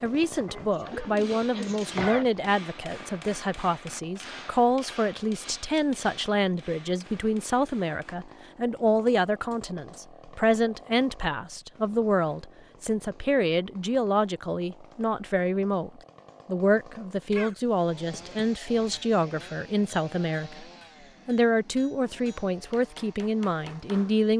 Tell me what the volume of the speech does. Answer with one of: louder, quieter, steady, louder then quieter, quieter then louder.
steady.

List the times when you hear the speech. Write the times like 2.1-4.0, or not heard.
0.0-20.6, 21.2-24.3.